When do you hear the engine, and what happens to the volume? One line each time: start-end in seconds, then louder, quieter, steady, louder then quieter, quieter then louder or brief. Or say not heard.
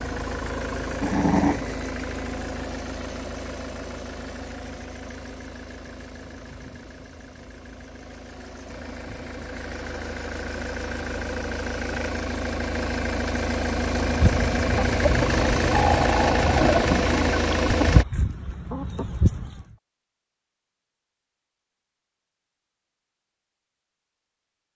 0.0-18.1 quieter then louder.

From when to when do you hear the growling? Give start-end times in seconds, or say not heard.
1.0-1.8, 16.6-17.2.